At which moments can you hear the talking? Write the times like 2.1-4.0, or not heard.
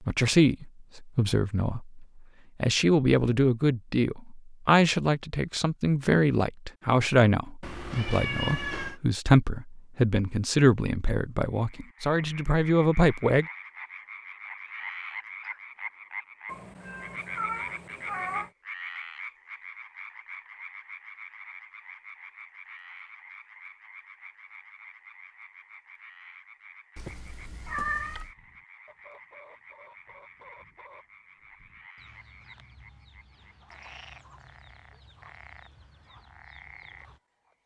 0.1-13.4.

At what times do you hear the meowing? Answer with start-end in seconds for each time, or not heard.
7.6-9.0, 16.4-18.5, 26.9-28.4.